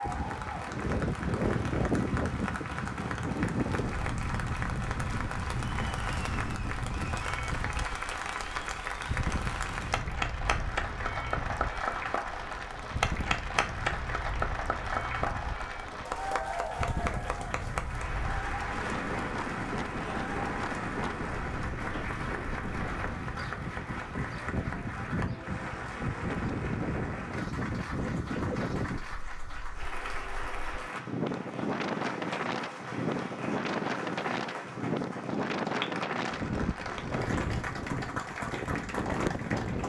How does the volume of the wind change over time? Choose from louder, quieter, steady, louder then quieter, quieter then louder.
quieter then louder.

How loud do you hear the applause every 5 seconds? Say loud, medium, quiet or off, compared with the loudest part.
medium, loud, loud, loud, medium, medium, medium, medium.